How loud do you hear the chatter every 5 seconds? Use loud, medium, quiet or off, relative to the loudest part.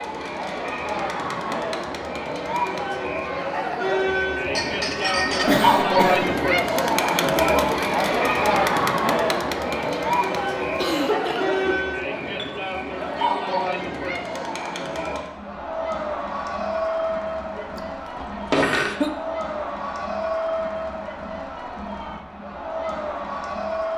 medium, loud, medium, medium, medium.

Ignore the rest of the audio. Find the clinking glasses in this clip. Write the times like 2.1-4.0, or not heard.
4.4-5.5, 12.3-13.2, 18.3-18.9.